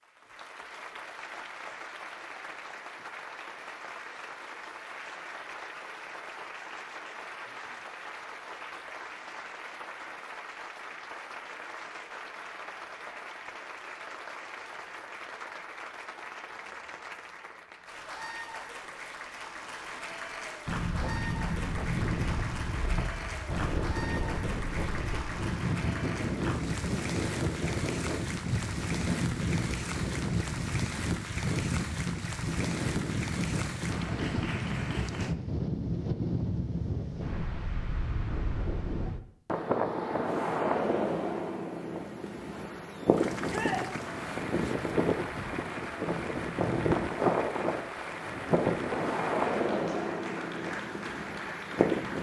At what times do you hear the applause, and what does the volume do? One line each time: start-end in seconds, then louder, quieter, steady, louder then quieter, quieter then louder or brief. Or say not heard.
0.0-35.4 steady
43.1-52.1 steady.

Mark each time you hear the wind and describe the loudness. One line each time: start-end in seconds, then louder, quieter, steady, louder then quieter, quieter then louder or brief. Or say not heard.
20.6-52.1 steady.